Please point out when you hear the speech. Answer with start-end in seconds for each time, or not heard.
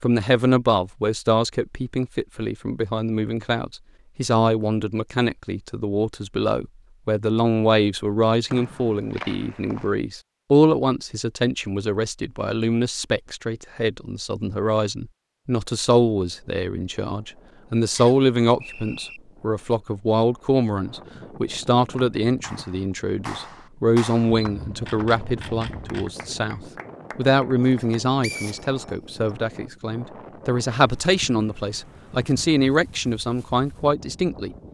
0.0-34.5.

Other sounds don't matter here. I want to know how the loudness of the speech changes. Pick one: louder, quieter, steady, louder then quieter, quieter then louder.
steady.